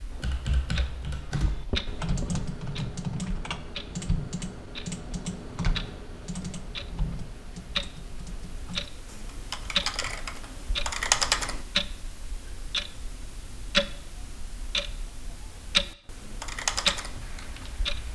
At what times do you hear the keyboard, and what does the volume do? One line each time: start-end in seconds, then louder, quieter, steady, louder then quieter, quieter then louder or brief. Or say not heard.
0.1-11.6 quieter then louder
16.1-18.1 brief.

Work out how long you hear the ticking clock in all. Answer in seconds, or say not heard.
18 s.